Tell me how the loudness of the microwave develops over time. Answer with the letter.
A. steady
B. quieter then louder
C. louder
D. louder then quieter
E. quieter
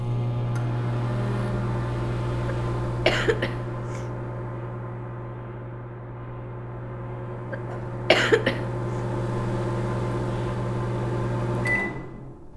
B.